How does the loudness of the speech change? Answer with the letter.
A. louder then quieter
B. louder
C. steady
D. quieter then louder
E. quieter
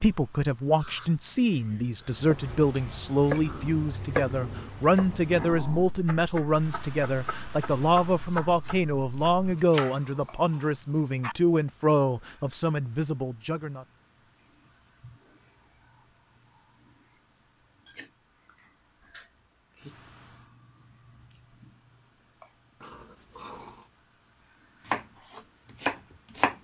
C.